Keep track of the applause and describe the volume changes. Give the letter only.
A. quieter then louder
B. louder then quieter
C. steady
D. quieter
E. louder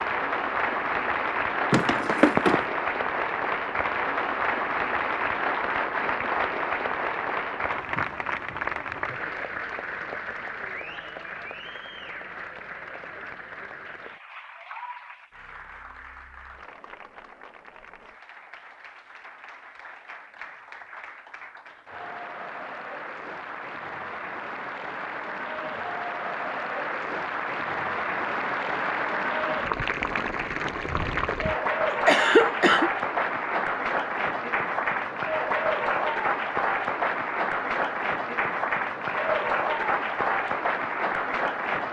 A.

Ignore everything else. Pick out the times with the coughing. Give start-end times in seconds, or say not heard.
1.7-2.6, 31.9-32.9.